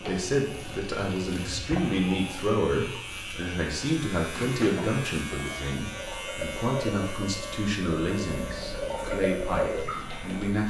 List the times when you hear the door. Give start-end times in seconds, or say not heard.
4.3-5.0.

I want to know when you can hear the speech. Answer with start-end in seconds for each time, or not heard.
0.0-10.6.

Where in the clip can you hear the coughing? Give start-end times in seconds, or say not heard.
not heard.